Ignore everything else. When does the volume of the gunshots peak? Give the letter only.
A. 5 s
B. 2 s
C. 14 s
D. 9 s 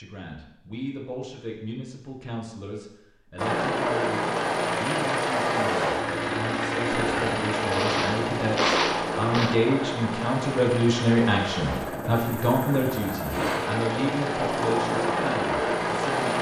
D.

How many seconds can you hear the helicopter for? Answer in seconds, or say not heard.
13 s.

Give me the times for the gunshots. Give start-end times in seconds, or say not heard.
6.9-9.6.